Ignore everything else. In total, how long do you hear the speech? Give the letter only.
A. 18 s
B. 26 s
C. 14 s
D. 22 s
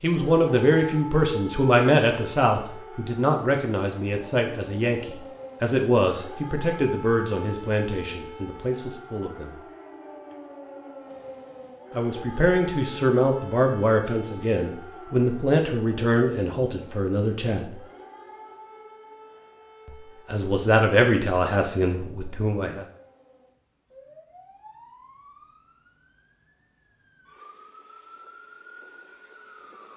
A.